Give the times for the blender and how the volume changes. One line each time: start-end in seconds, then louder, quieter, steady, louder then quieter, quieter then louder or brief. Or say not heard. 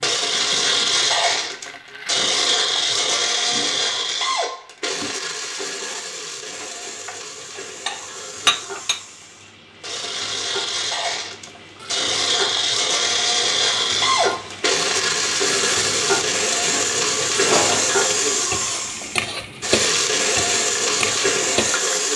0.0-22.1 quieter then louder.